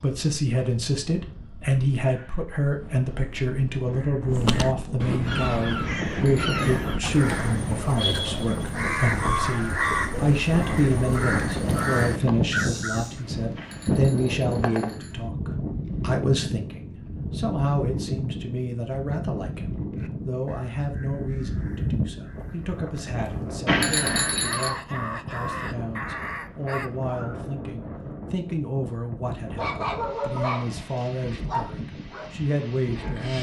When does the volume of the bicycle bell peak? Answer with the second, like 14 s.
24 s.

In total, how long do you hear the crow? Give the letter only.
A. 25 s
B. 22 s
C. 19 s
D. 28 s
C.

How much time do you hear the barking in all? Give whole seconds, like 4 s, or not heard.
4 s.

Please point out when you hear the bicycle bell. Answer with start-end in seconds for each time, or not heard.
6.1-6.5, 13.6-15.3, 23.6-24.7.